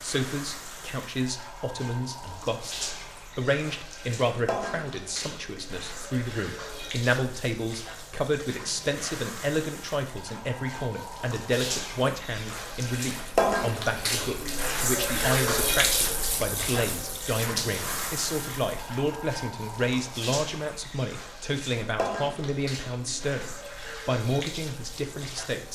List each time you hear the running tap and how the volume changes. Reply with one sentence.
You can hear the running tap from 0.0 to 25.7 s, getting louder then quieter.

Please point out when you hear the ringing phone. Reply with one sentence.
The ringing phone can't be heard in this clip.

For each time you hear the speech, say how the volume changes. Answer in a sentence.
You can hear the speech from 0.0 to 25.7 s, at a steady volume.